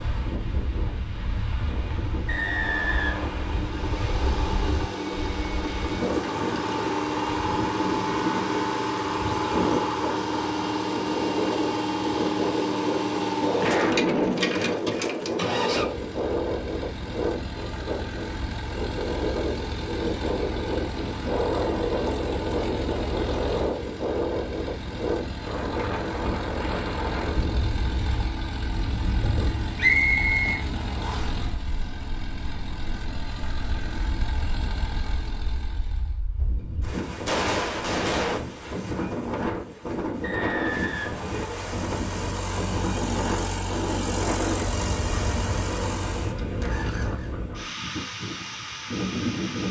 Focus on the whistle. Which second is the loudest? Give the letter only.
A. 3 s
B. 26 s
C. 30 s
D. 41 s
C.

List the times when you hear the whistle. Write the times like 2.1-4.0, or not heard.
2.2-3.4, 29.8-31.3, 40.2-41.7.